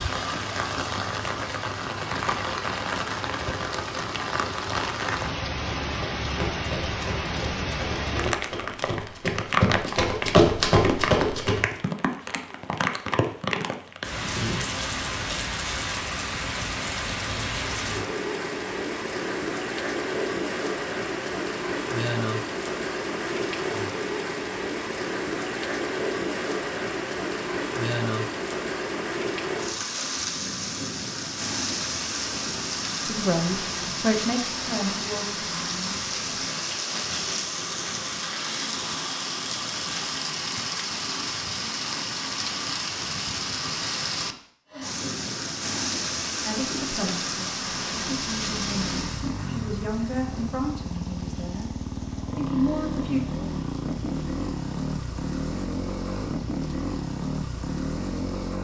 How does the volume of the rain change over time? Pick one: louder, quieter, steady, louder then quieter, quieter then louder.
quieter.